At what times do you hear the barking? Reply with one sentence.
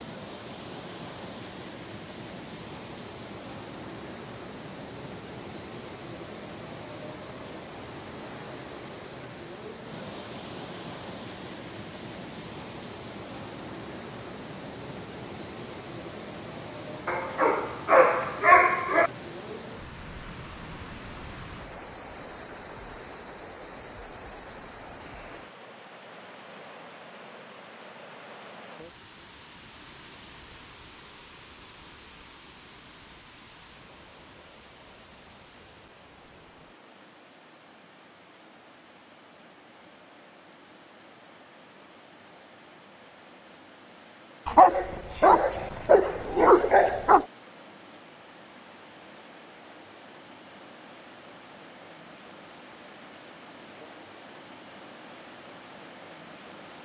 The barking can be heard from 17.1 to 19.1 s and from 44.5 to 47.2 s.